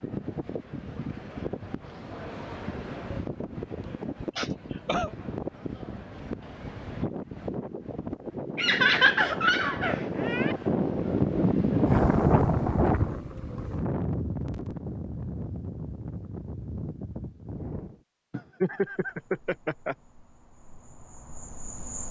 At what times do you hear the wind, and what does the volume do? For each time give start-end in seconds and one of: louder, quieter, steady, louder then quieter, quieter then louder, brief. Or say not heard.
0.0-18.0 louder then quieter.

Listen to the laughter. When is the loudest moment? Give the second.
9 s.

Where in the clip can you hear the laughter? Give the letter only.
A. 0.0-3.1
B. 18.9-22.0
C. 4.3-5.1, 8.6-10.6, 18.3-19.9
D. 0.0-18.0
C.